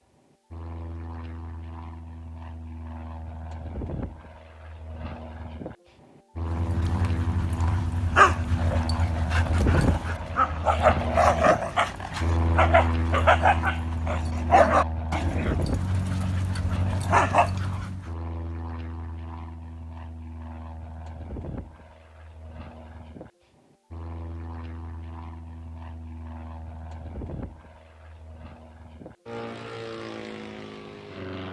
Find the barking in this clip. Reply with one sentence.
You can hear the barking from 6.4 to 18.1 s.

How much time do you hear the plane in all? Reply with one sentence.
You can hear the plane for 31 seconds altogether.